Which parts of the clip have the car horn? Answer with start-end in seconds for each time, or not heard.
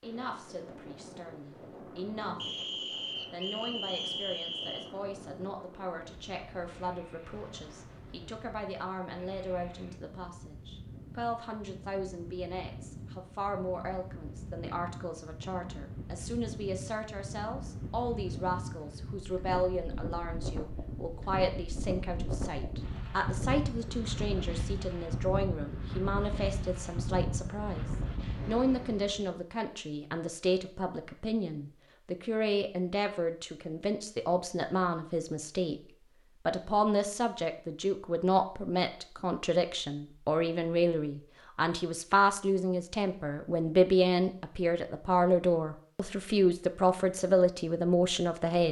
not heard.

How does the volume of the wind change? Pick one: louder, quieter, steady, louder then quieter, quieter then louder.
louder.